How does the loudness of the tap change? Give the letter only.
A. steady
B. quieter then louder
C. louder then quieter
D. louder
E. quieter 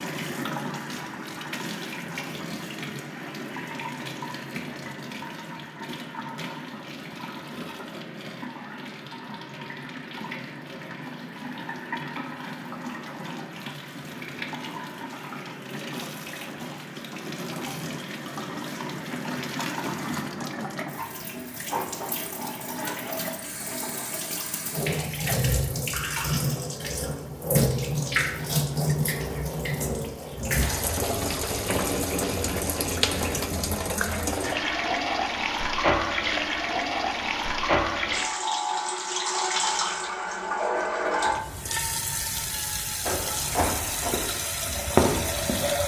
D.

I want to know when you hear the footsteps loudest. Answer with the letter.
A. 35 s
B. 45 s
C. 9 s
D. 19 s
B.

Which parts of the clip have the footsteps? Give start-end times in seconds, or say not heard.
43.0-45.8.